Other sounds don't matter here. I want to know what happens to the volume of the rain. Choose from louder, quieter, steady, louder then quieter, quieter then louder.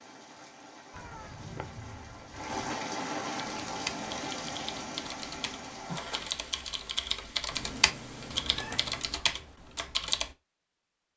louder then quieter.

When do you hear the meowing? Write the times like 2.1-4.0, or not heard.
0.9-2.6, 7.5-9.2.